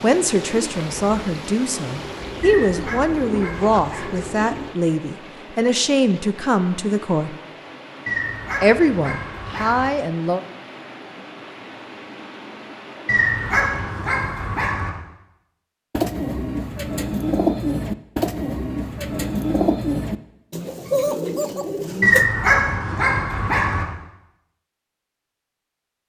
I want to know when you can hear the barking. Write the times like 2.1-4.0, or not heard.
2.4-4.2, 8.1-9.9, 13.1-14.9, 22.0-23.9.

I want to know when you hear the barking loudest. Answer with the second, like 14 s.
22 s.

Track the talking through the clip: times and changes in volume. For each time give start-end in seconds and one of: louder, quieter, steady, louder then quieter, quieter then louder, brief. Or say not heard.
0.0-7.3 steady
8.6-10.4 brief.